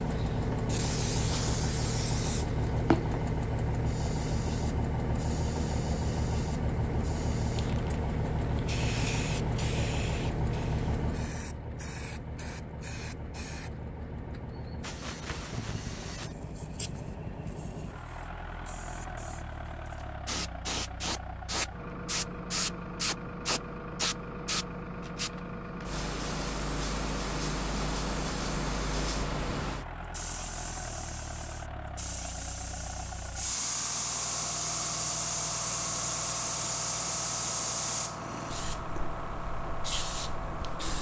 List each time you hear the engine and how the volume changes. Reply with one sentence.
The engine can be heard from 0.0 to 40.9 s, getting quieter.